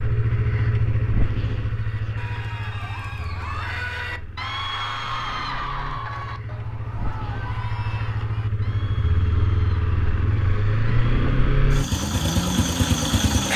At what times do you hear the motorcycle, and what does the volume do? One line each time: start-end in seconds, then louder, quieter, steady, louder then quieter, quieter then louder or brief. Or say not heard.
0.0-13.5 quieter then louder.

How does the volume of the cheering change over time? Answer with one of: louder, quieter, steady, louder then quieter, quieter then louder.
louder then quieter.